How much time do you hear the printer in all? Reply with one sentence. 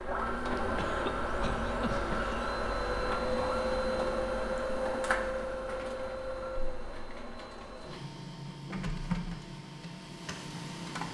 The printer can be heard for 11 seconds in total.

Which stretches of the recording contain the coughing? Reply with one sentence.
The coughing can be heard from 0.6 to 2.4 s.